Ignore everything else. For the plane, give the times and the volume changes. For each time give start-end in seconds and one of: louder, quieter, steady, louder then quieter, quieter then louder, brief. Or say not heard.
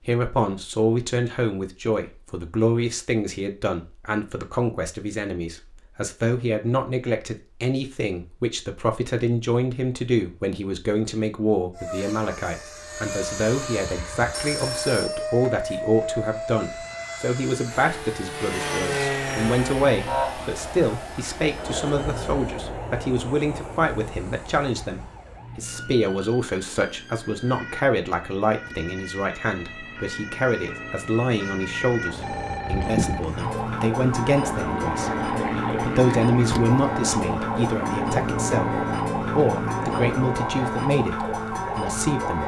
11.8-40.5 quieter then louder.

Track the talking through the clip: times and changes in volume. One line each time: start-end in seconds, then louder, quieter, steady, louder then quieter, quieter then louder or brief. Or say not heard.
0.1-42.4 steady.